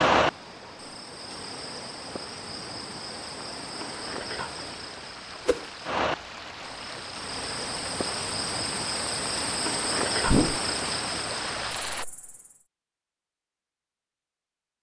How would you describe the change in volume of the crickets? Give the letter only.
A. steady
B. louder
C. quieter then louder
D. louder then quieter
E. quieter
B.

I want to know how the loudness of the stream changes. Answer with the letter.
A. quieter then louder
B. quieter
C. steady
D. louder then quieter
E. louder
E.